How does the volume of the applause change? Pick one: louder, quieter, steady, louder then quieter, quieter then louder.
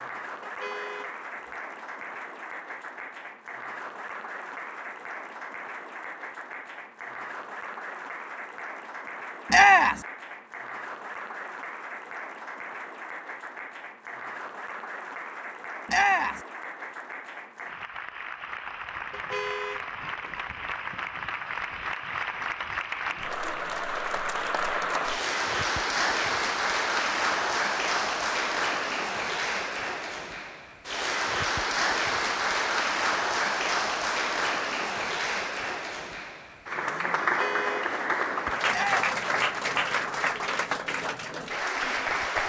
louder.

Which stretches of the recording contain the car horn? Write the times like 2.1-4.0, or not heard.
0.4-1.1, 19.1-20.3, 37.2-37.9.